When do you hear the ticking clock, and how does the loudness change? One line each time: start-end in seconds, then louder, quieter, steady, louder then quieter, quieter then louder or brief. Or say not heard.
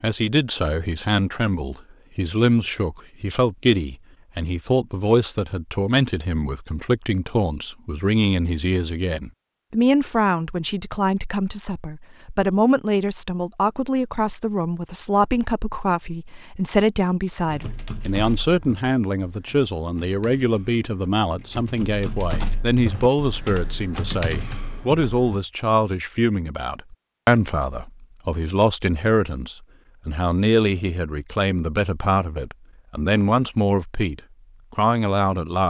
not heard.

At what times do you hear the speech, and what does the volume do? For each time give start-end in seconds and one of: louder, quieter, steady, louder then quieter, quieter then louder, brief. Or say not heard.
0.0-35.6 steady.